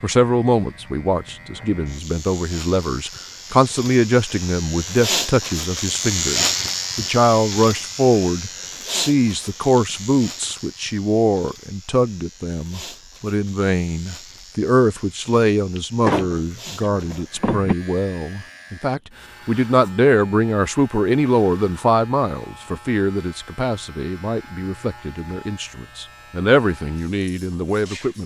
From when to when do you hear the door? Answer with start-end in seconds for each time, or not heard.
15.8-17.8.